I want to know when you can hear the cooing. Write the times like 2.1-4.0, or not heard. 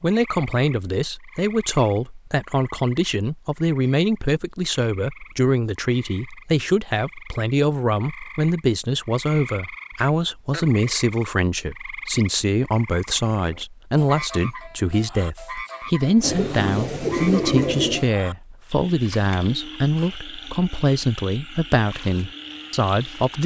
16.2-18.1.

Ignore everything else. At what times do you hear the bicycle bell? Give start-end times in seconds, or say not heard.
not heard.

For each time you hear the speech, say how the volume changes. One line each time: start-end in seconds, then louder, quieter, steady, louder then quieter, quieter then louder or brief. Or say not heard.
0.0-23.4 steady.